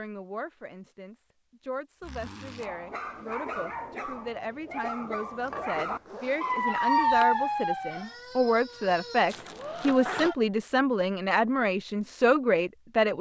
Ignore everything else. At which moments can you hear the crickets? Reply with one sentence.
The crickets can't be heard in this clip.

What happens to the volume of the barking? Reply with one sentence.
The loudness of the barking goes up, then down.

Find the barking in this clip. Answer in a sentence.
You can hear the barking from 2.6 to 10.3 s.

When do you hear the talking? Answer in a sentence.
You can hear the talking from 0.0 to 13.1 s.